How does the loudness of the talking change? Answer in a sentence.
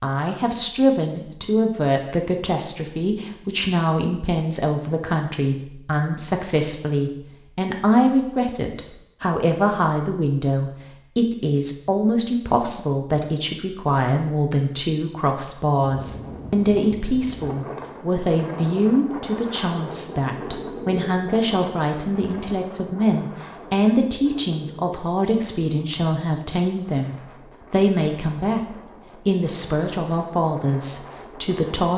The volume of the talking stays about the same.